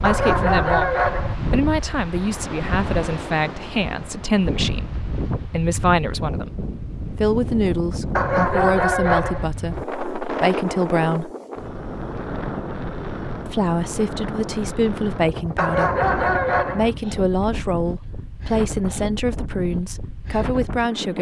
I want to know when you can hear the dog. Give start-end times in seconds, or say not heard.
0.0-1.4, 8.2-9.4, 15.6-16.9.